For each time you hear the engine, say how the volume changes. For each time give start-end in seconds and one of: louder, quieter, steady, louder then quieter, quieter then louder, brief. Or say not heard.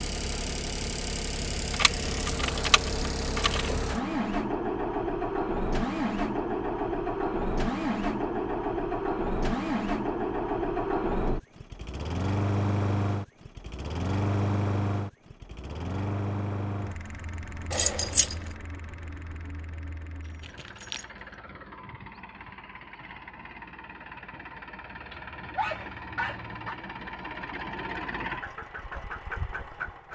0.0-30.1 quieter then louder.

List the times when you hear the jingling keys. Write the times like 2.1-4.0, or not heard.
1.7-3.7, 17.7-18.4, 20.2-21.1.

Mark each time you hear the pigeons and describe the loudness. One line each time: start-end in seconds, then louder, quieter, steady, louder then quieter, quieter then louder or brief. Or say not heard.
not heard.